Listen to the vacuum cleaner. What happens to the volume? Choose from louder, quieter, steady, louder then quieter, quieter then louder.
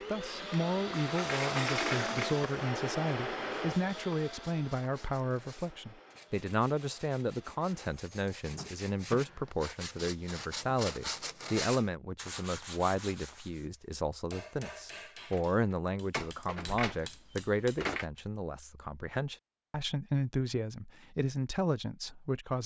quieter.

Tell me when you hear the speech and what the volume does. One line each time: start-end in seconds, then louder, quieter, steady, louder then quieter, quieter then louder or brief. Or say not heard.
0.1-22.6 steady.